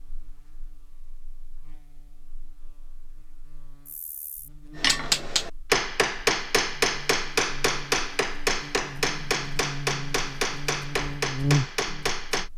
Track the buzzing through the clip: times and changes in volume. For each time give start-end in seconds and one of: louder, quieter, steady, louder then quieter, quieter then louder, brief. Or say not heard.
0.0-12.5 louder.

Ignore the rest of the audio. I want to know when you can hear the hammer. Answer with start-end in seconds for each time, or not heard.
4.8-12.5.